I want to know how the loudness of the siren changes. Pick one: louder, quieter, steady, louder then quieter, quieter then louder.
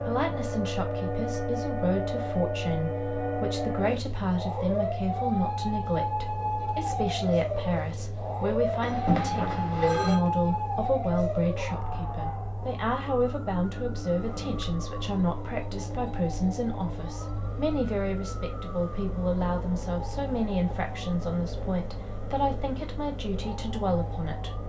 quieter.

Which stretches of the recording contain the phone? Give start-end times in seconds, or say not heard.
8.8-10.2.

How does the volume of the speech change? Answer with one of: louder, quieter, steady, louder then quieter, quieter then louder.
steady.